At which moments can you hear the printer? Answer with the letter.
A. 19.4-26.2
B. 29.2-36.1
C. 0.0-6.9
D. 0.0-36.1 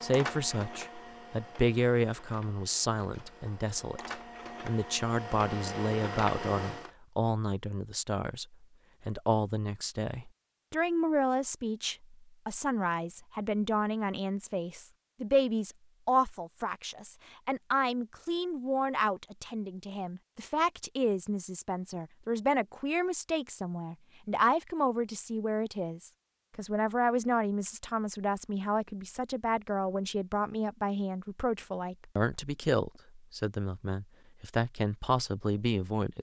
C.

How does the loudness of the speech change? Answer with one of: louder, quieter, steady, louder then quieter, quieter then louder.
steady.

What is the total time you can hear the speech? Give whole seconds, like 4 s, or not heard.
36 s.